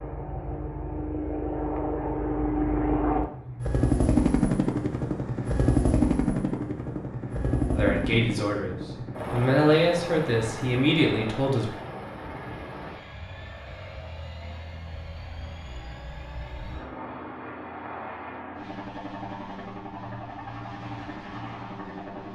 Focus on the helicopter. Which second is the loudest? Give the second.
4 s.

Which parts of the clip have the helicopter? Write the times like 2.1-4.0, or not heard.
0.0-22.3.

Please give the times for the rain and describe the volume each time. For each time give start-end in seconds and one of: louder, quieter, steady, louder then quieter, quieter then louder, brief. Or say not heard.
not heard.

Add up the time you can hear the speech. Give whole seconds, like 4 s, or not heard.
4 s.